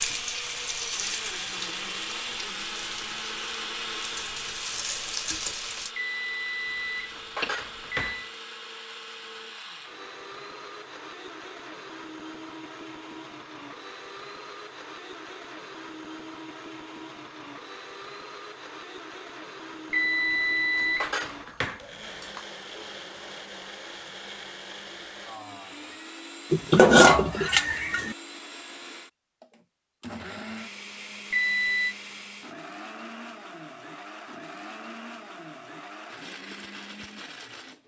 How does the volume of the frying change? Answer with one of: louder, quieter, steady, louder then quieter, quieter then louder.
quieter then louder.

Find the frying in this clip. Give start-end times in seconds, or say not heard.
0.0-6.0.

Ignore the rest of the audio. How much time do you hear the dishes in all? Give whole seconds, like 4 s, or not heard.
5 s.